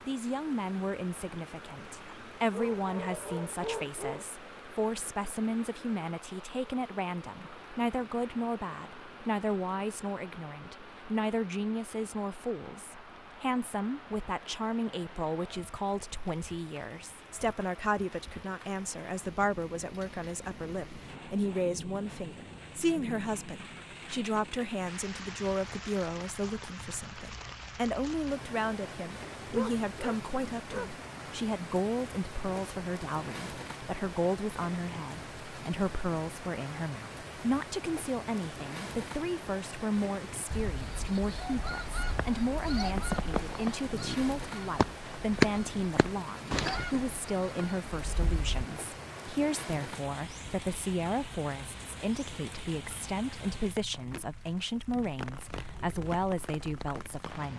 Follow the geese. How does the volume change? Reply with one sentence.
The volume of the geese goes up, then down.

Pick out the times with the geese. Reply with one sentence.
You can hear the geese from 40.5 to 48.6 s.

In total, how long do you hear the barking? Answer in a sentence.
You can hear the barking for 4 seconds altogether.